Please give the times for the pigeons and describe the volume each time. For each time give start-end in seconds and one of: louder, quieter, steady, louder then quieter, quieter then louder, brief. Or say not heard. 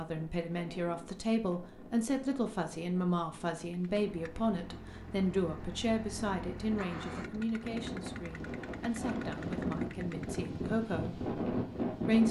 not heard.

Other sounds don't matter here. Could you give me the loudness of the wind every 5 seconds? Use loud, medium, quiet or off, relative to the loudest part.
quiet, medium, loud.